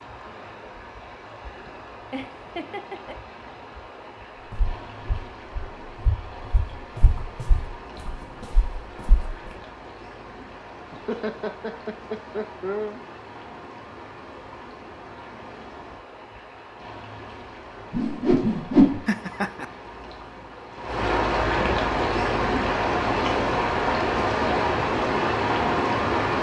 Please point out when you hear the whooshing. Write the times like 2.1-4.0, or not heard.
17.9-19.0.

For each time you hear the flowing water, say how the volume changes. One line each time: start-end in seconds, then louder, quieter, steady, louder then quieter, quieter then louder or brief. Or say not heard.
0.0-26.3 louder.